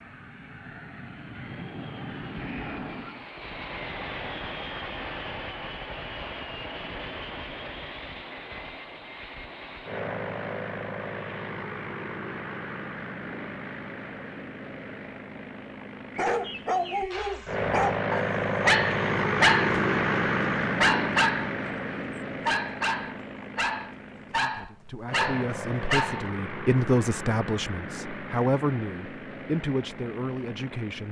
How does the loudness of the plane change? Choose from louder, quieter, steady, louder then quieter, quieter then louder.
louder then quieter.